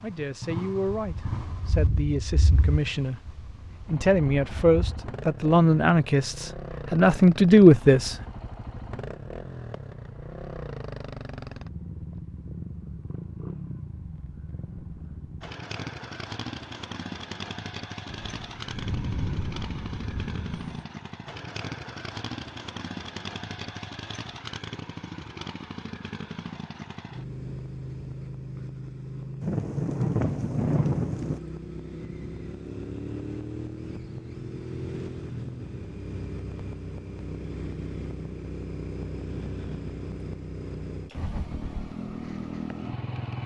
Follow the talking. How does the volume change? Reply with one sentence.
The volume of the talking goes up.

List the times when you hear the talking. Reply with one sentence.
You can hear the talking from 0.0 to 8.2 s.